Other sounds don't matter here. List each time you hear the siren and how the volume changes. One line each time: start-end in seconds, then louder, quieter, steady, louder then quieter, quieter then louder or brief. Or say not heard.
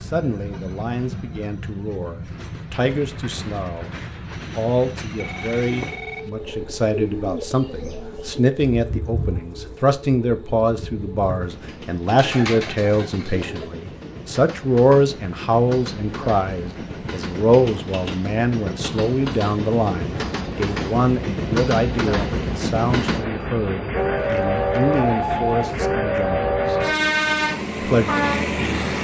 not heard.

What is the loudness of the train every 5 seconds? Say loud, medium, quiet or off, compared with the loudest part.
quiet, quiet, quiet, medium, loud, loud.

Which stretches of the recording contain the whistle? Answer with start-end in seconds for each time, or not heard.
not heard.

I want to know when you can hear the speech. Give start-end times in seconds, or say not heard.
0.0-26.8, 27.8-28.9.